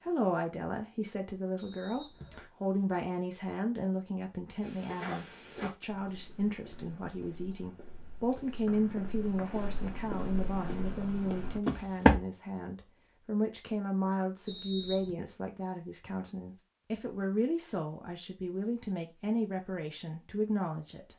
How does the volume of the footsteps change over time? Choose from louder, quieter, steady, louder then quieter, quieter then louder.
quieter then louder.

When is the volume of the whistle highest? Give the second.
15 s.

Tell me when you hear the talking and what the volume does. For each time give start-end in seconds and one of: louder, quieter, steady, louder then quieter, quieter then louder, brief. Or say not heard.
0.0-21.1 steady.